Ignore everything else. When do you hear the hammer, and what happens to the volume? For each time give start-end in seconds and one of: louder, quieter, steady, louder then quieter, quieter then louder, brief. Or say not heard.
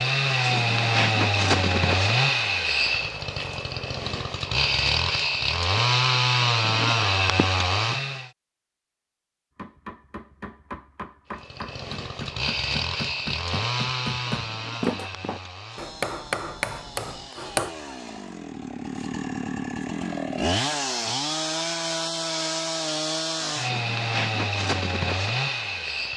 9.6-17.7 louder.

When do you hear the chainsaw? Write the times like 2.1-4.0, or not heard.
0.0-8.3, 11.3-26.1.